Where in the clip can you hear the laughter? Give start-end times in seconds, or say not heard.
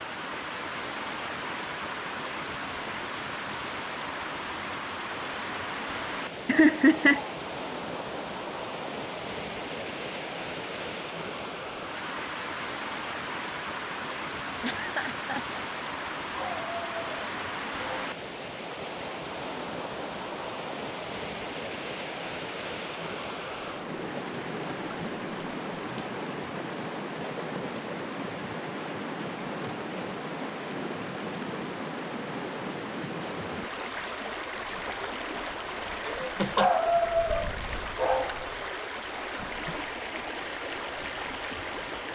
6.5-7.2, 14.6-15.6, 36.0-36.7.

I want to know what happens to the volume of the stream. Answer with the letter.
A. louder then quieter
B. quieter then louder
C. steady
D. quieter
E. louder
C.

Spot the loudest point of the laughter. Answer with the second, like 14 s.
7 s.